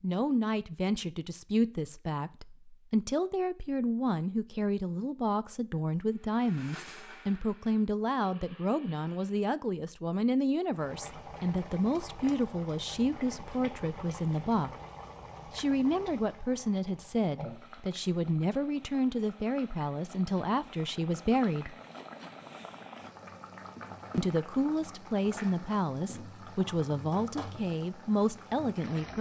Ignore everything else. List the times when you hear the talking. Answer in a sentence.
The talking can be heard from 0.0 to 14.7 s, from 15.5 to 21.8 s and from 24.1 to 29.1 s.